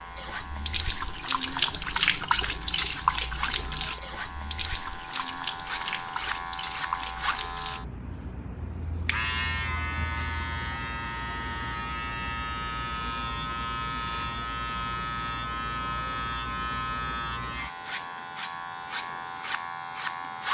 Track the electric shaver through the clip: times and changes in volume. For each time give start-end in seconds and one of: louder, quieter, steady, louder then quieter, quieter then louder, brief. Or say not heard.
0.0-20.5 louder.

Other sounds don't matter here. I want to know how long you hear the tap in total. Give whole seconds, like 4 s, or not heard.
8 s.